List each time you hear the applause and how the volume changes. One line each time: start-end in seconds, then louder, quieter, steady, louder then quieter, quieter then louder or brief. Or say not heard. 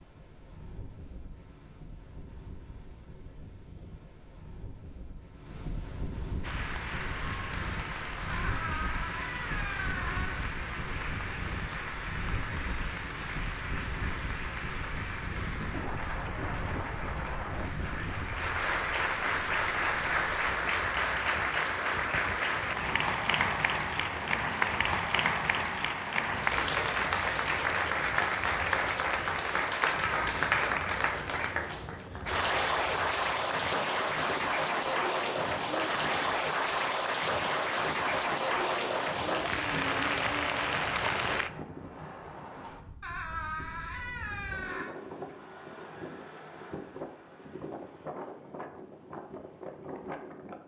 6.4-41.5 louder.